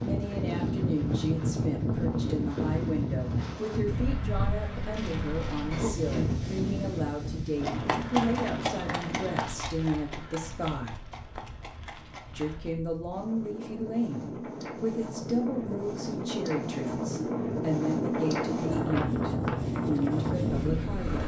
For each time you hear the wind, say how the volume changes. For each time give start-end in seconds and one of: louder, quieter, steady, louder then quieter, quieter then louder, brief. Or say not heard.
0.0-21.2 quieter then louder.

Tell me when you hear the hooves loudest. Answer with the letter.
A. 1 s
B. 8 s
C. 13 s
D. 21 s
B.